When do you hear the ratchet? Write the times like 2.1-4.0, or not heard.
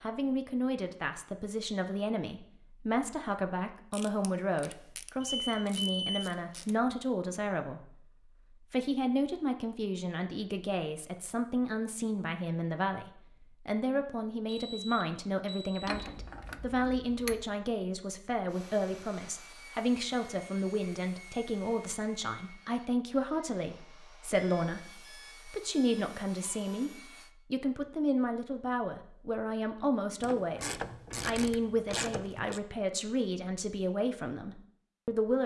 3.9-6.8, 15.8-17.5, 30.2-32.6.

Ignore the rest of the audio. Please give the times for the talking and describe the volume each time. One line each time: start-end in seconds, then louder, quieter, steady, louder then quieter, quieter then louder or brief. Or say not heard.
0.0-8.1 steady
8.7-35.4 steady.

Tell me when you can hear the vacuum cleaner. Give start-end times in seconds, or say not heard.
not heard.